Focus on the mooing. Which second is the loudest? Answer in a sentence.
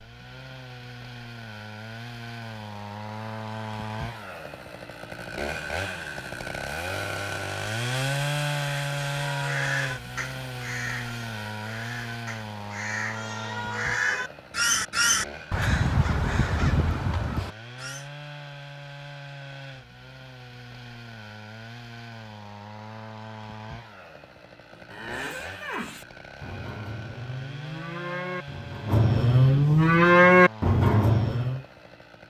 The volume of the mooing peaks at 30 seconds.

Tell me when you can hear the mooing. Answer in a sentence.
The mooing can be heard from 24.7 to 31.6 s.